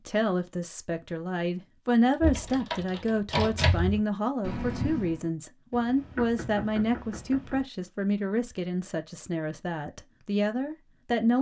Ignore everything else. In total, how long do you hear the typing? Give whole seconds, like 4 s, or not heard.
3 s.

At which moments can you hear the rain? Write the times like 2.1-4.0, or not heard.
not heard.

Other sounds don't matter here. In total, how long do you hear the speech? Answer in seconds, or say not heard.
11 s.